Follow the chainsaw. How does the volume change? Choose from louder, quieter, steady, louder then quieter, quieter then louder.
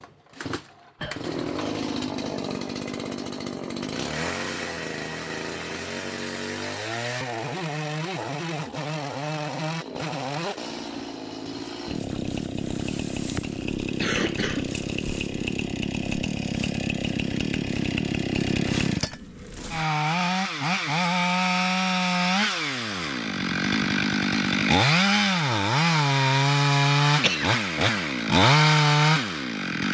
louder.